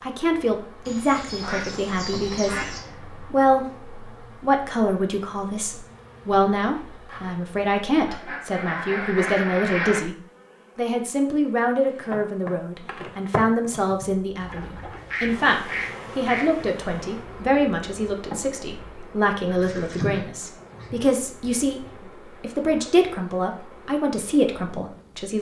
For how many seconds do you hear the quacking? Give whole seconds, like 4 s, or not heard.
8 s.